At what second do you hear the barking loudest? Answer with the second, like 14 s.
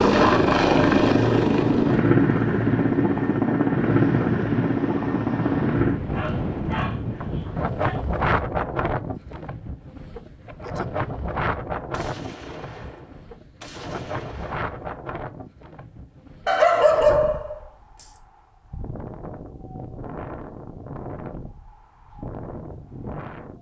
17 s.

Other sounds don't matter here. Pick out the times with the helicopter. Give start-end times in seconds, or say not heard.
0.0-6.0.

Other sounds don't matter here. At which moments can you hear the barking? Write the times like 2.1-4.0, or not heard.
6.1-8.0, 16.4-18.1.